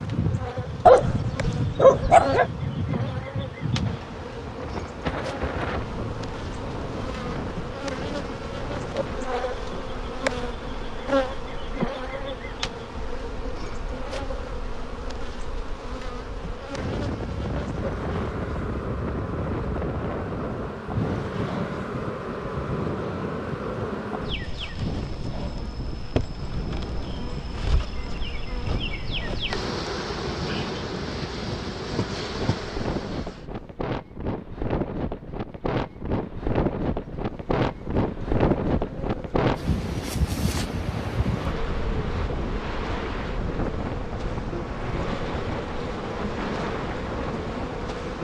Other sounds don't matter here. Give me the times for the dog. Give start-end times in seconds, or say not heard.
0.8-2.5.